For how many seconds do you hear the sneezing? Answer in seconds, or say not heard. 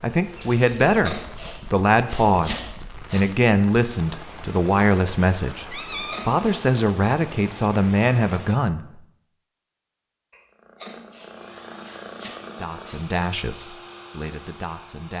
5 s.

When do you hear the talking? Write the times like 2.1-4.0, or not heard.
0.0-9.0, 12.6-15.1.